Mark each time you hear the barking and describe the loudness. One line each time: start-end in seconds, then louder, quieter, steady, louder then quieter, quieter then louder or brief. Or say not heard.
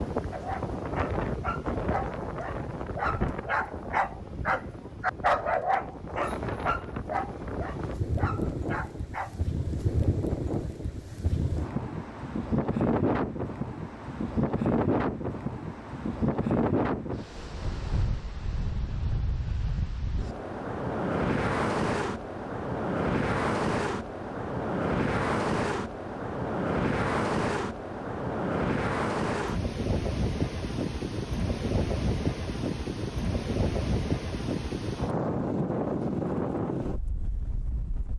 0.3-9.4 louder then quieter.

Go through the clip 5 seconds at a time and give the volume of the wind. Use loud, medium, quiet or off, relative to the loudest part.
medium, medium, loud, loud, loud, loud, loud, loud.